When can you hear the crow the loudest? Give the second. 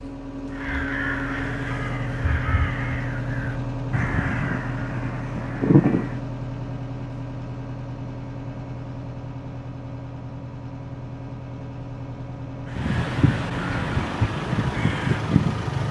6 s.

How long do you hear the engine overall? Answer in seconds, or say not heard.
16 s.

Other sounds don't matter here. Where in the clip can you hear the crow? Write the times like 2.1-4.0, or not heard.
0.5-6.2, 12.7-15.8.